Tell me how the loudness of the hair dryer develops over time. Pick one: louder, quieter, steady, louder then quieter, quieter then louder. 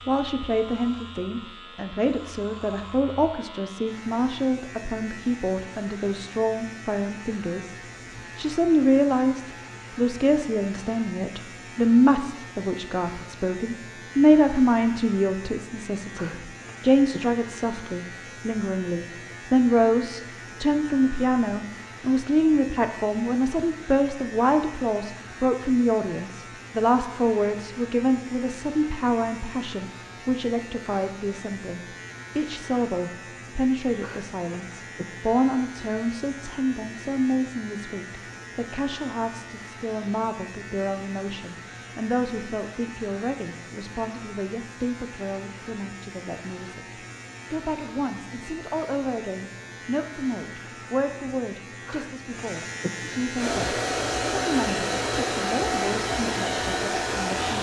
steady.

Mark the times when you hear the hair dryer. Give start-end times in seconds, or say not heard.
53.4-57.5.